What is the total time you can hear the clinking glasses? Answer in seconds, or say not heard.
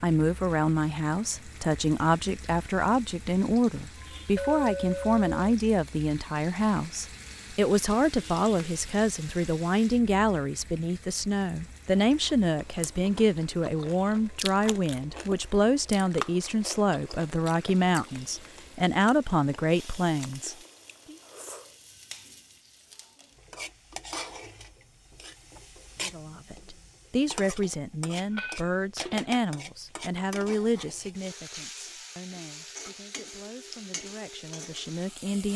2 s.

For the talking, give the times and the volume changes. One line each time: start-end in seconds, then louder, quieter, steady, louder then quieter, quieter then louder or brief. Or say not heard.
0.0-21.1 steady
26.0-35.5 quieter then louder.